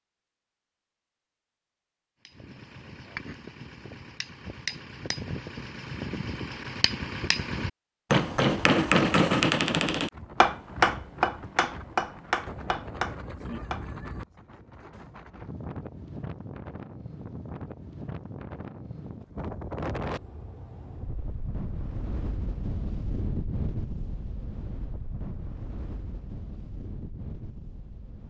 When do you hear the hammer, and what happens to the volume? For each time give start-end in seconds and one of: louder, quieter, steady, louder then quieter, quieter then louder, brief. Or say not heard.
2.2-13.8 louder then quieter.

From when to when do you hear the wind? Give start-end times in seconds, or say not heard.
10.1-28.2.